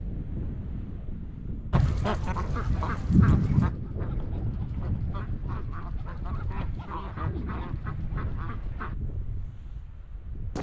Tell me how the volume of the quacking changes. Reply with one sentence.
The loudness of the quacking goes down.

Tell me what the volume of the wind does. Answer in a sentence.
The loudness of the wind stays about the same.